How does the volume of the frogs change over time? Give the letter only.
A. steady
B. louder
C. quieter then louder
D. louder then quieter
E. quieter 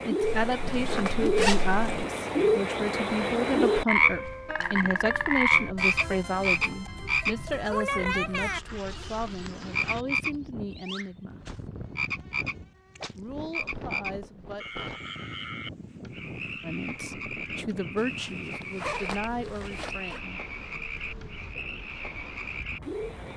E.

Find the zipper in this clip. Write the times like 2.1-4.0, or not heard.
0.2-2.0, 8.2-10.1, 17.9-20.2.